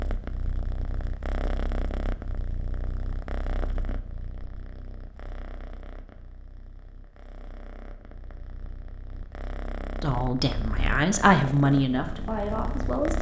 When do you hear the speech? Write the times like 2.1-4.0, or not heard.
10.0-13.1.